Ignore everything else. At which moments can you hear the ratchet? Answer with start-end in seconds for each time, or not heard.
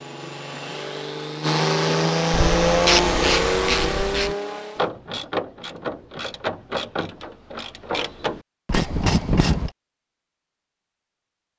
2.3-9.7.